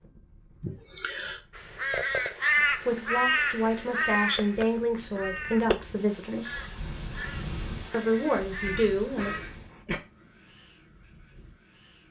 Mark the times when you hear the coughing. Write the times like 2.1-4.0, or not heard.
0.6-1.4, 8.6-10.0.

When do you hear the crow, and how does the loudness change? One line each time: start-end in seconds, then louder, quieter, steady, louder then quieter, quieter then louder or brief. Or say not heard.
1.6-9.4 quieter.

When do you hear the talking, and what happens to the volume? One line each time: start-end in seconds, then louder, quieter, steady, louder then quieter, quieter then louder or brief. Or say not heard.
2.6-6.7 steady
7.9-9.3 brief.